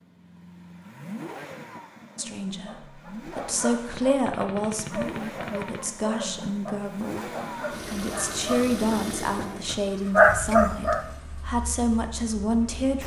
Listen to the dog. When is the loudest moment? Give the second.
10 s.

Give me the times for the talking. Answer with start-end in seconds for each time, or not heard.
2.1-13.0.